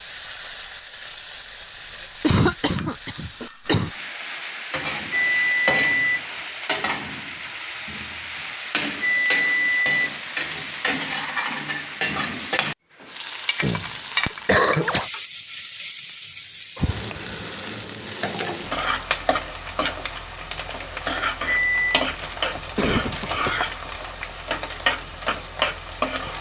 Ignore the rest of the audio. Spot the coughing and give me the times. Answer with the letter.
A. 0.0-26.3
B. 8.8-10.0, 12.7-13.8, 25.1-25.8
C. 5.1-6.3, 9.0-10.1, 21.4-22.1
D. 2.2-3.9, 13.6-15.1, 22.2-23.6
D.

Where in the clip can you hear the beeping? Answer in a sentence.
The beeping can be heard from 5.1 to 6.3 s, from 9.0 to 10.1 s and from 21.4 to 22.1 s.